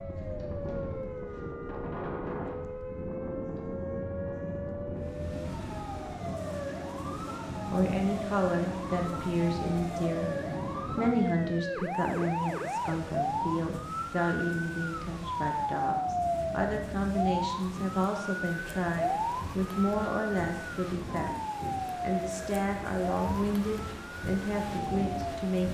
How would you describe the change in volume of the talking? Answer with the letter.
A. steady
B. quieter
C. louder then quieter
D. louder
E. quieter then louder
A.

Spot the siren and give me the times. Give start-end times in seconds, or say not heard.
0.0-25.6.